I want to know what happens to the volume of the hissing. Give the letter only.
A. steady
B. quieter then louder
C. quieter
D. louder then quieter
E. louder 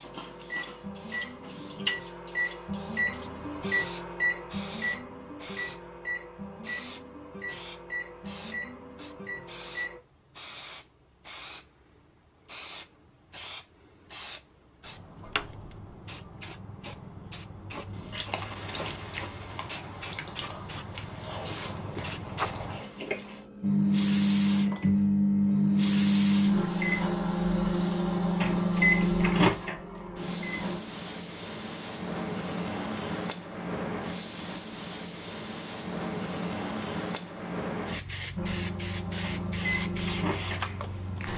E.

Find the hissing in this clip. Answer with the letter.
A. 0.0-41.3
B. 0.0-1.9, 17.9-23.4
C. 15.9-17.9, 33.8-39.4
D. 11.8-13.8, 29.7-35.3
A.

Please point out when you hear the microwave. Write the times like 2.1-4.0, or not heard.
0.0-10.0, 23.6-30.8, 38.4-41.3.